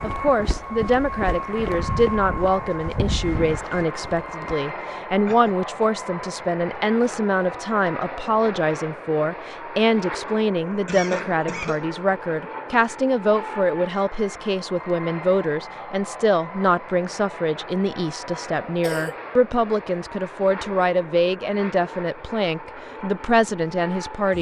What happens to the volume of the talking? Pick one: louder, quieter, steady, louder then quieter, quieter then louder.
steady.